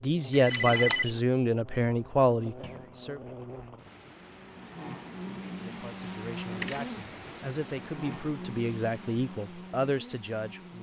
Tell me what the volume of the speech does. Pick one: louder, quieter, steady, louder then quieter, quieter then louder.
quieter then louder.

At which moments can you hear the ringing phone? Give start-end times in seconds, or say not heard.
0.3-1.2.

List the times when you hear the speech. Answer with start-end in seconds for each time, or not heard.
0.0-3.2, 5.7-10.7.